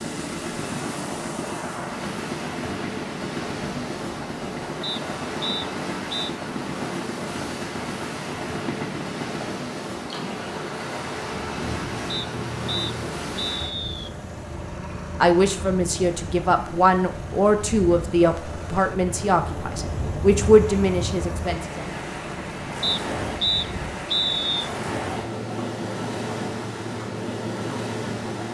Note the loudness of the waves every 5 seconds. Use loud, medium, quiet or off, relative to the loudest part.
loud, loud, loud, medium, loud, loud.